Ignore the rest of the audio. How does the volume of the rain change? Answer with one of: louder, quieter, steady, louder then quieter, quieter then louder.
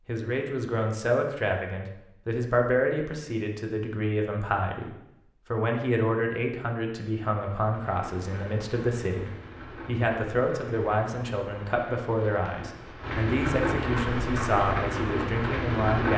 louder.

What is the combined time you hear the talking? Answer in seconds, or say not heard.
16 s.